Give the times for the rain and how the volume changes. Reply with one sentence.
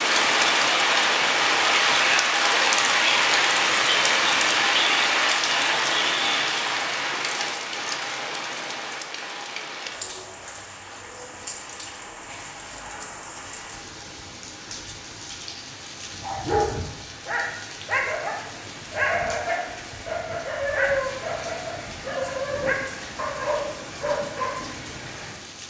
The rain can be heard from 0.0 to 25.6 s, getting quieter.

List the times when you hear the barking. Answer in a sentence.
The barking can be heard from 16.1 to 24.6 s.